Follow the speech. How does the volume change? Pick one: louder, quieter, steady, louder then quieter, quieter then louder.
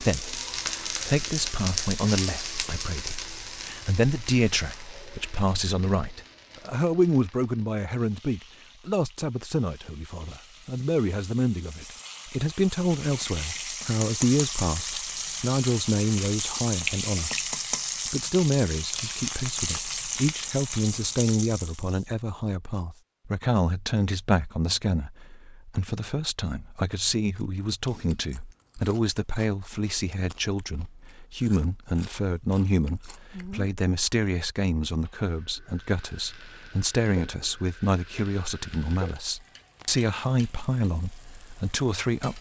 steady.